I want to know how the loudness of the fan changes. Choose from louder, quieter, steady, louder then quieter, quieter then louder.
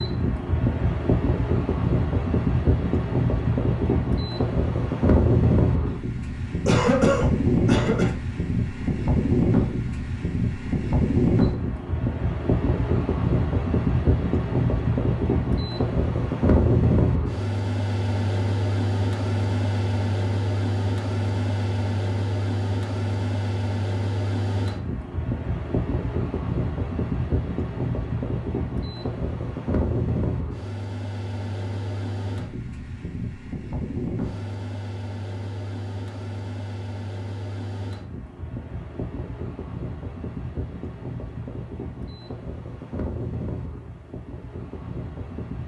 quieter.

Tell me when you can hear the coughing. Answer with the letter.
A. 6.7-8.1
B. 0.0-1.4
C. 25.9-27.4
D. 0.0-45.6
A.